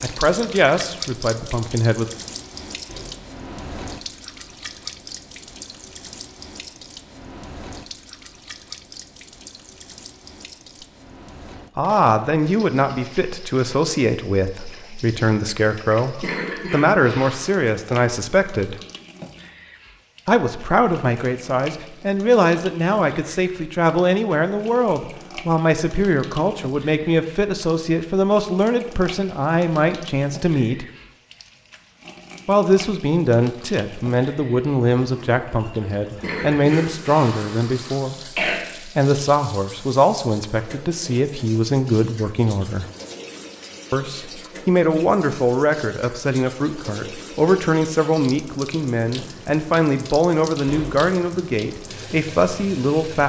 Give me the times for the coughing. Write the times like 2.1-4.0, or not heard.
16.2-17.5, 36.2-38.5.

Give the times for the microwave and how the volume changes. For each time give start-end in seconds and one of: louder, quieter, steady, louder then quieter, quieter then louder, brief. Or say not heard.
not heard.